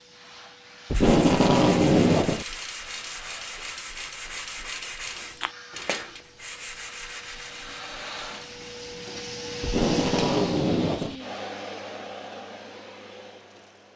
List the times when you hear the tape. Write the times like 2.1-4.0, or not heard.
0.9-2.5, 9.6-11.2.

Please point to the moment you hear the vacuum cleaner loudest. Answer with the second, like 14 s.
10 s.